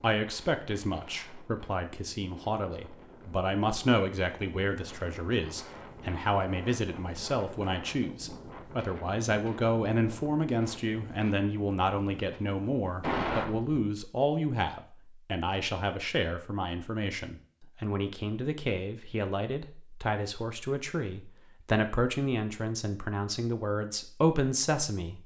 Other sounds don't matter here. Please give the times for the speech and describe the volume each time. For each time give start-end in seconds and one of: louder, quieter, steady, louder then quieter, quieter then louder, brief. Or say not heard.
0.0-25.2 steady.